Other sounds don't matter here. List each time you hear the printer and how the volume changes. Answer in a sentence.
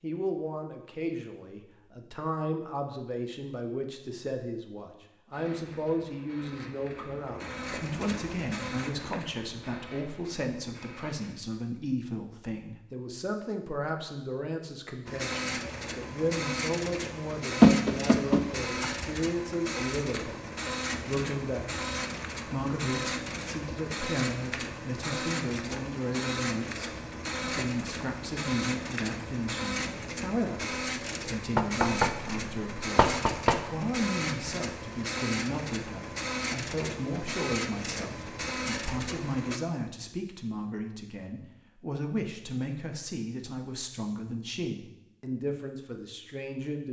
The printer can be heard from 5.3 to 11.3 s, getting louder then quieter; and from 15.1 to 39.6 s, at a steady volume.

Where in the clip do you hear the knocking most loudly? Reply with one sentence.
The loudest moment of the knocking is at 18 seconds.